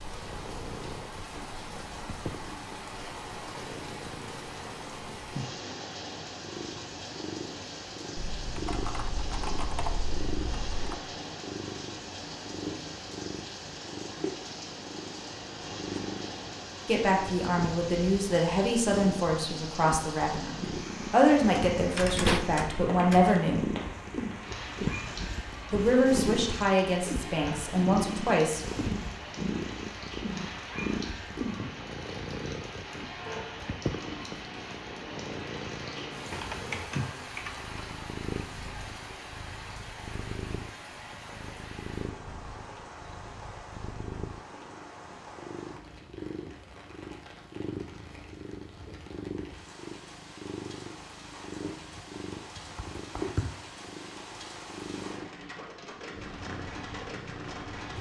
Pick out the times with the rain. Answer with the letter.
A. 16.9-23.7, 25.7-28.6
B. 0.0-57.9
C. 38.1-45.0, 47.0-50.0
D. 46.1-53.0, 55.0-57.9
B.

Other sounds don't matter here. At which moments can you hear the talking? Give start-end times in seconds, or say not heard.
16.9-23.7, 25.7-28.6.